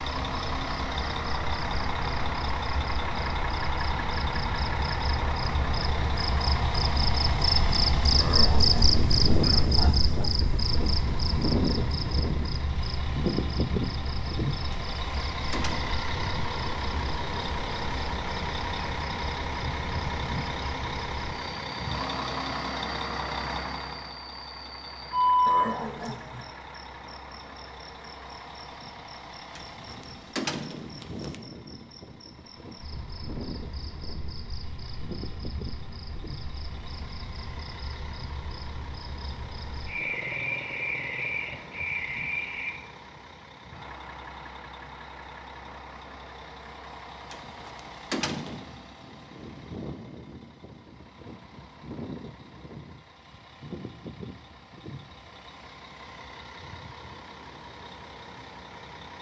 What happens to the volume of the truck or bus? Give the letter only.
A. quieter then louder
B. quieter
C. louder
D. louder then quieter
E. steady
B.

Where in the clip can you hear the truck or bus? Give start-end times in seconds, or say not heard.
0.0-59.1.